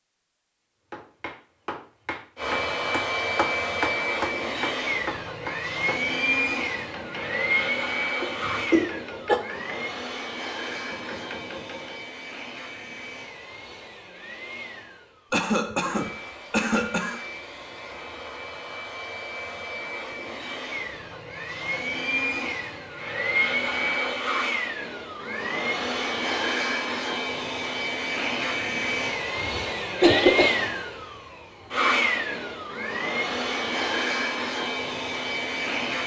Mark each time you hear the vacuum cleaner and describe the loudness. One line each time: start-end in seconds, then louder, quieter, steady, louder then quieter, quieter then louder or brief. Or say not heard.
2.4-36.0 quieter then louder.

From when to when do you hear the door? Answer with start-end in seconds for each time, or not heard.
not heard.